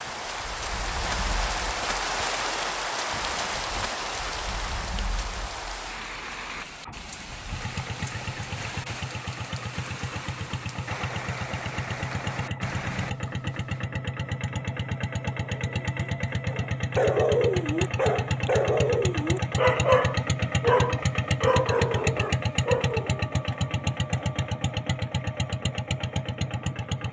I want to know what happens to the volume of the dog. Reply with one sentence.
The volume of the dog stays about the same.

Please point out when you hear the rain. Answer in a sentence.
The rain can be heard from 0.0 to 13.8 s.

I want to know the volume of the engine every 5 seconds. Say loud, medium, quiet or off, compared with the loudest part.
quiet, medium, medium, loud, loud, loud.